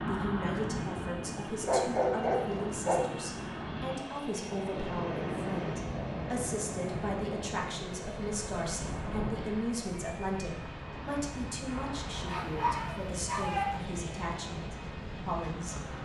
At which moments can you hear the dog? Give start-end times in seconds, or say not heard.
1.6-3.0, 12.2-13.7.